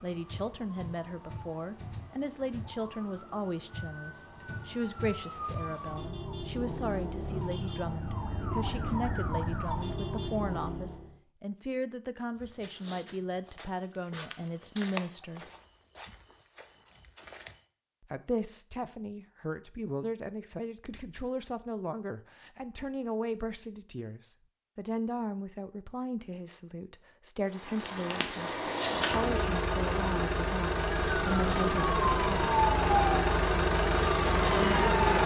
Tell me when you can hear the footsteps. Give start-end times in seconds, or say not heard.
12.3-17.6.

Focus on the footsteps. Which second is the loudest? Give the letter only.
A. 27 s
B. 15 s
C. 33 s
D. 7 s
B.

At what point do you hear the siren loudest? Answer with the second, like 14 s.
33 s.